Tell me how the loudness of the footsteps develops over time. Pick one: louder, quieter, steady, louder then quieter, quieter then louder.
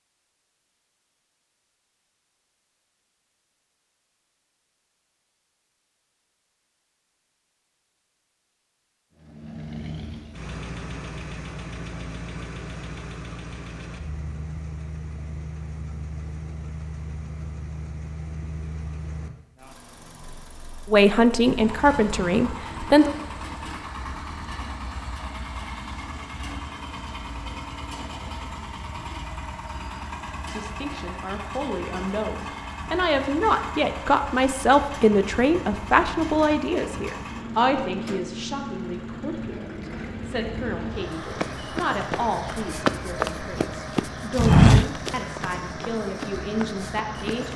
louder then quieter.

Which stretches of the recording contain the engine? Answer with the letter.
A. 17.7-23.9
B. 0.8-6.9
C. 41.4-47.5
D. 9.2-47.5
D.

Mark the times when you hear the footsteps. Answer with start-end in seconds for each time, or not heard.
41.4-47.5.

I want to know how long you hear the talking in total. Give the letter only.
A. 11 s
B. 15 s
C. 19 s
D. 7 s
C.